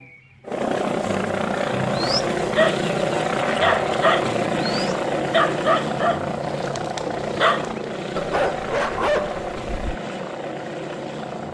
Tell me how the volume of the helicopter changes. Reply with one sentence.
The loudness of the helicopter goes down.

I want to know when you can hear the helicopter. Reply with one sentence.
You can hear the helicopter from 0.0 to 11.4 s.